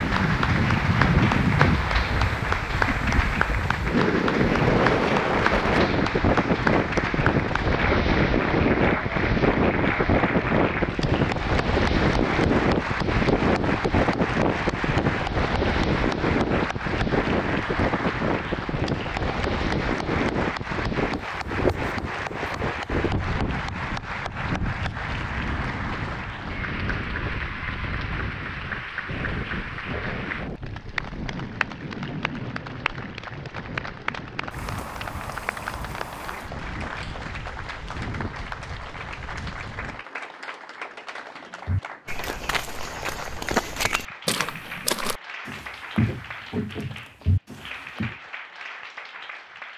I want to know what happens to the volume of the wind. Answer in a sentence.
The volume of the wind goes down.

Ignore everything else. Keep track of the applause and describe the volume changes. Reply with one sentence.
The volume of the applause goes down.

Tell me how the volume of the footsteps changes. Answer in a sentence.
The volume of the footsteps goes up, then down.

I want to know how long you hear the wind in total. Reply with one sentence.
The wind can be heard for 40 seconds in total.